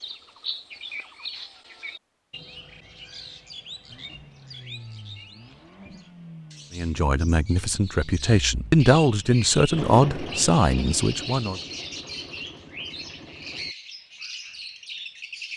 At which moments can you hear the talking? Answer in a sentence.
You can hear the talking from 6.7 to 11.6 s.